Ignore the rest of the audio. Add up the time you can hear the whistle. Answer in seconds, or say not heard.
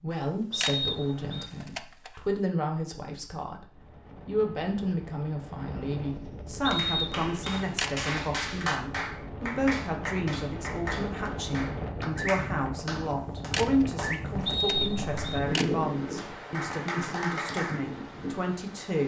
3 s.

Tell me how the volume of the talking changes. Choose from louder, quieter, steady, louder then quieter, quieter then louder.
steady.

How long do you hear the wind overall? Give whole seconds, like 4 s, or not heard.
15 s.